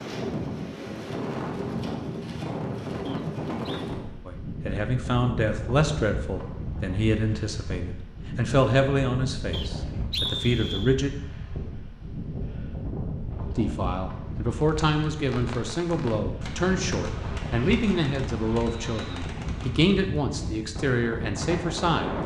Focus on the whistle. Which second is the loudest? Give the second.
10 s.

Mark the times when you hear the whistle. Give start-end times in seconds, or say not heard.
3.0-3.9, 9.5-10.9, 18.9-19.3.